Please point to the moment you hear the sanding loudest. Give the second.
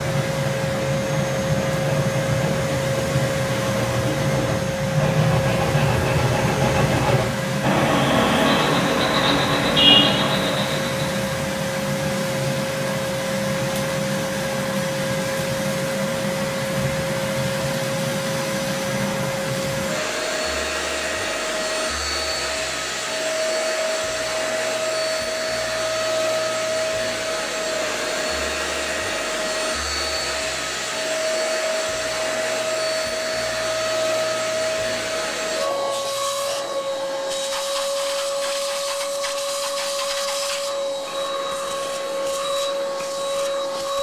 10 s.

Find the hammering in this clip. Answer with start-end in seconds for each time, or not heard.
not heard.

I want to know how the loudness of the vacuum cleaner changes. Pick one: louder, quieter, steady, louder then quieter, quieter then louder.
steady.